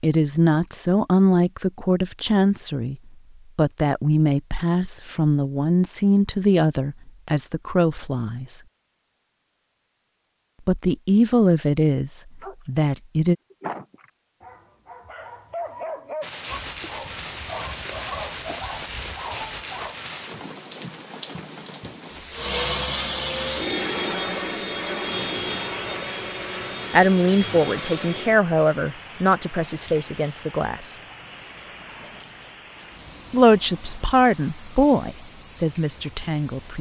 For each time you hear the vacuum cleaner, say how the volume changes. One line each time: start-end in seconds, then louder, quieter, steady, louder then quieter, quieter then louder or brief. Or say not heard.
22.3-28.4 quieter.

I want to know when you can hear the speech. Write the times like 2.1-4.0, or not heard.
0.0-3.0, 3.5-8.6, 10.7-13.3, 26.9-31.0, 33.3-36.7.